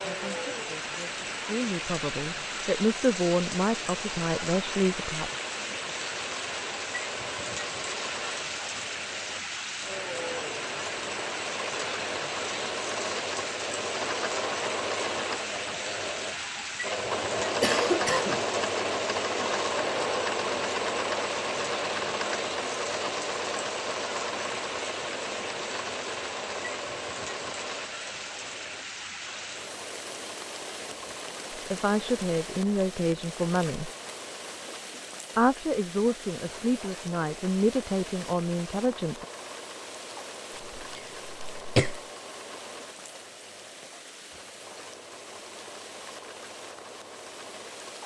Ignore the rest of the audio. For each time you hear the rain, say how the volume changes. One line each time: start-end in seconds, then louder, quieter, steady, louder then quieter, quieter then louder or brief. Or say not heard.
0.0-48.0 quieter.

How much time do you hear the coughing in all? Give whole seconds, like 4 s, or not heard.
2 s.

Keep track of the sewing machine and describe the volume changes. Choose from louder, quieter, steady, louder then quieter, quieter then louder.
louder then quieter.